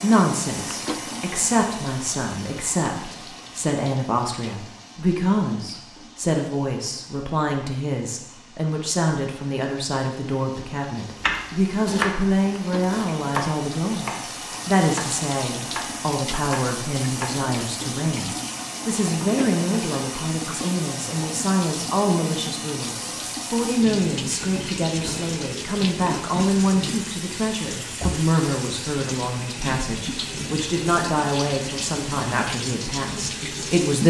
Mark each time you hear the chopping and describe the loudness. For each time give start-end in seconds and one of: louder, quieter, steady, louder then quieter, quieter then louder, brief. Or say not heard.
11.2-17.4 quieter.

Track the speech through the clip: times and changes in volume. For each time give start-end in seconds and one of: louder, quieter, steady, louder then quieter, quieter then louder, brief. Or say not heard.
0.0-34.0 steady.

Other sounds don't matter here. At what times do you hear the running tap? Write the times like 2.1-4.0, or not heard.
0.0-34.0.